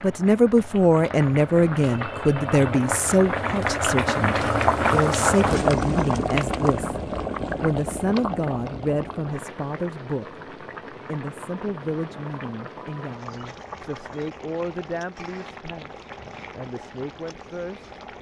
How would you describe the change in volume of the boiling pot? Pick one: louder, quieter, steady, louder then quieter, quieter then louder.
louder then quieter.